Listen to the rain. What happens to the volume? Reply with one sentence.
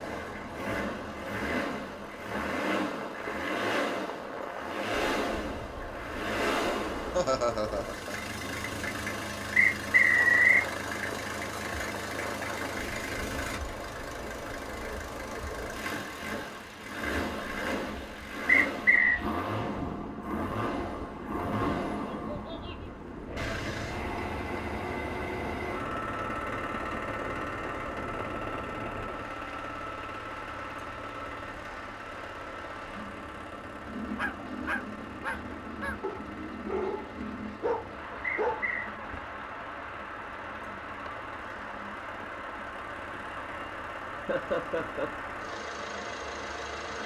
The volume of the rain stays about the same.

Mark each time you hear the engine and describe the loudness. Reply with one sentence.
You can hear the engine from 0.0 to 47.0 s, getting quieter.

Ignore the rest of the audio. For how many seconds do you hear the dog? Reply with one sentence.
The dog can be heard for 5 seconds in total.